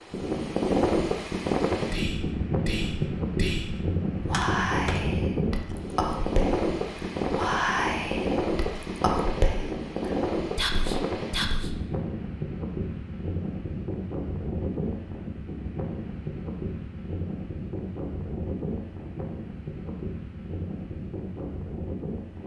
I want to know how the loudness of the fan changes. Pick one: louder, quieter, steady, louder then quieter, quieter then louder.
quieter.